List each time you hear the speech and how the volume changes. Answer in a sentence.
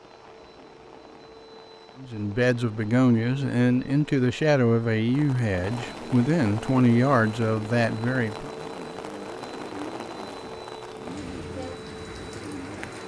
You can hear the speech from 1.9 to 8.5 s, at a steady volume.